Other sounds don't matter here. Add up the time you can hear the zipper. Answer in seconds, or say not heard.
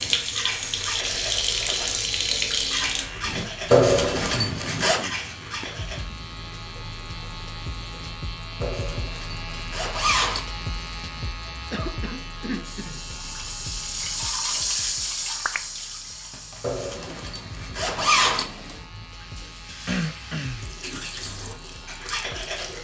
5 s.